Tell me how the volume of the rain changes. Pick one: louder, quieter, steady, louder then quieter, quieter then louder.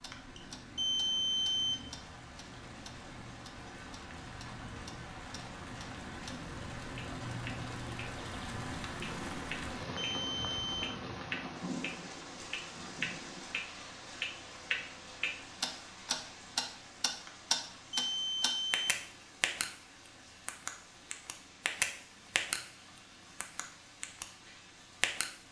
louder then quieter.